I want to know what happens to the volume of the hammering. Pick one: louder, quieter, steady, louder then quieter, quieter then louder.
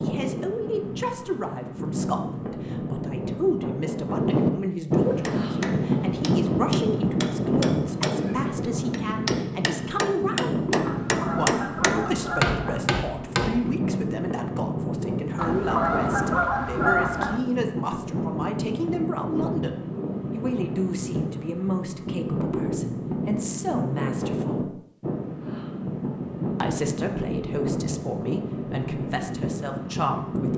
louder.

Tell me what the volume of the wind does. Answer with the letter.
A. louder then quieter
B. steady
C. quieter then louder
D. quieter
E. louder
B.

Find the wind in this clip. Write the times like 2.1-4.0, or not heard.
0.0-30.5.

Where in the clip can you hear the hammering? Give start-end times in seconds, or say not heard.
5.2-13.8.